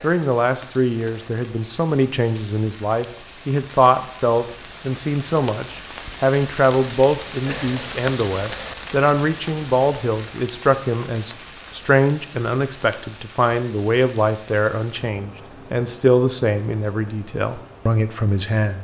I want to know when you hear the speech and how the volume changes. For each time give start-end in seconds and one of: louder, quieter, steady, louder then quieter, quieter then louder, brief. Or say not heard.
0.0-18.7 steady.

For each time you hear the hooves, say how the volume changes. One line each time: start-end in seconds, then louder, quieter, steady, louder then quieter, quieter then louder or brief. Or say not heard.
not heard.